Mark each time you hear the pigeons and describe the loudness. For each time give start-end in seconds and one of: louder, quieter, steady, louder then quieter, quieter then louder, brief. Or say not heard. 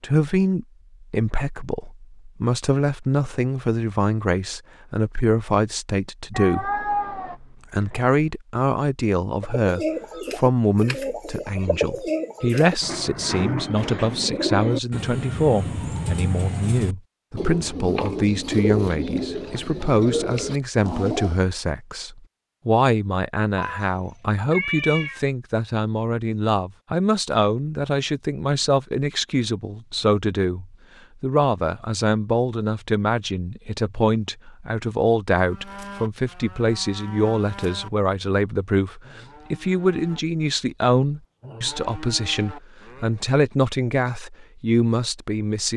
9.4-21.4 steady.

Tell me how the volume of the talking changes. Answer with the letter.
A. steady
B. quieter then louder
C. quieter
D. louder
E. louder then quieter
A.